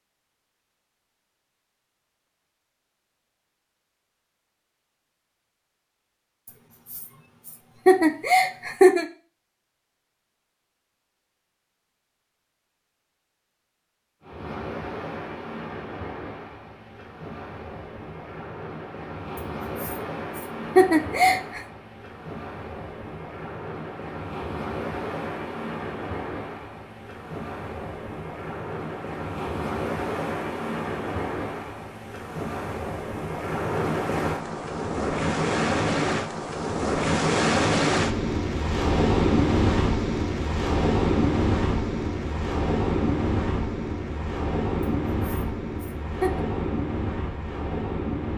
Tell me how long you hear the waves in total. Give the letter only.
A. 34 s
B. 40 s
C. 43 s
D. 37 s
A.